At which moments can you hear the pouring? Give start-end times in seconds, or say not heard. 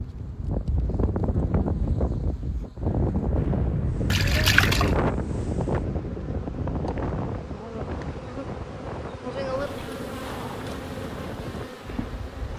4.1-5.0.